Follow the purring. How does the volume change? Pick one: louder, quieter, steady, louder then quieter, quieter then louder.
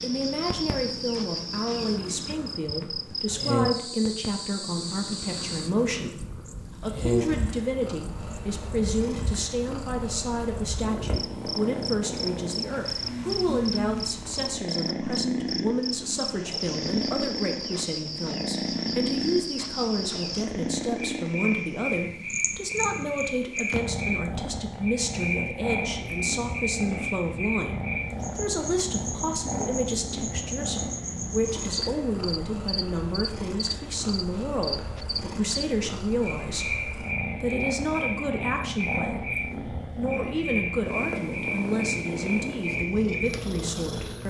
steady.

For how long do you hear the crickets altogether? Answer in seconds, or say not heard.
44 s.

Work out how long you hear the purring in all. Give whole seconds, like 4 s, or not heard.
44 s.